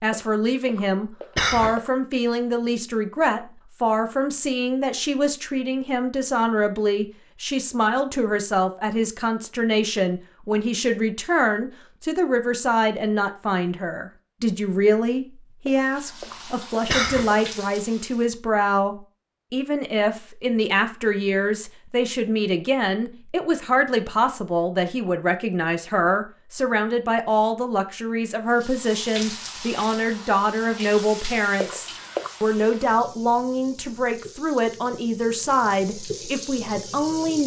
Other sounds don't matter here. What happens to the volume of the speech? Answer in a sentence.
The volume of the speech stays about the same.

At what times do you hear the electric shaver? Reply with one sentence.
You can't hear the electric shaver here.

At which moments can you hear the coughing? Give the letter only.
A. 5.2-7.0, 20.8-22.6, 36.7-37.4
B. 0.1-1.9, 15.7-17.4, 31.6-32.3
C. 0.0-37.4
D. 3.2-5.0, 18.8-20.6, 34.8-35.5
B.